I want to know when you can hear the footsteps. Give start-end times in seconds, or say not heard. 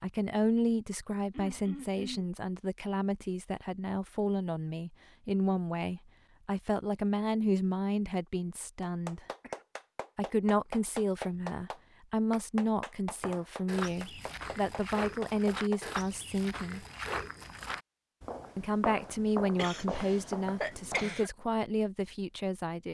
13.2-21.1.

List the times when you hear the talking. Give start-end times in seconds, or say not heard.
0.0-9.2, 10.2-16.9, 18.6-22.8.